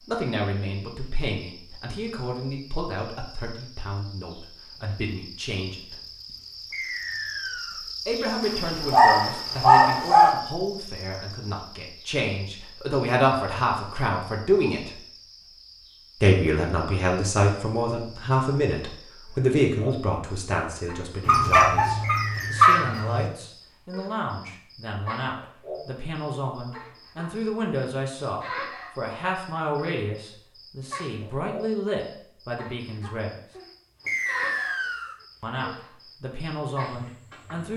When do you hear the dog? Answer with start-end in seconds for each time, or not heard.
8.4-10.3, 21.2-23.3.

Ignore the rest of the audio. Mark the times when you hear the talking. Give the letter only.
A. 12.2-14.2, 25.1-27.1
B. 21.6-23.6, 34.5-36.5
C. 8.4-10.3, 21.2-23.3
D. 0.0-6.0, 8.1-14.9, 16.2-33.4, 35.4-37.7
D.